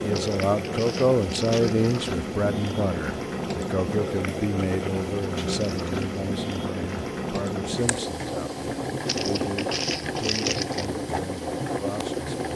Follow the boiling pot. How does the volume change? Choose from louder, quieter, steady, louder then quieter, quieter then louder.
steady.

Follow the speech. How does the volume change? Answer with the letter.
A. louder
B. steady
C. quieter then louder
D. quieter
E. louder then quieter
D.